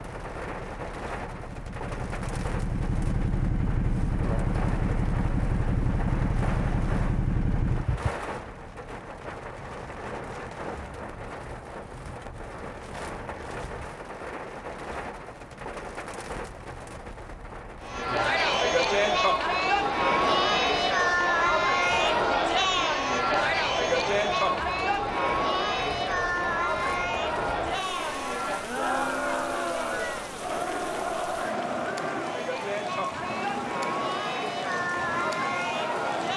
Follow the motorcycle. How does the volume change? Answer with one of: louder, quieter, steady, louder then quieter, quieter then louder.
louder.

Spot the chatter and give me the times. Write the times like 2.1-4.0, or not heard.
17.8-36.3.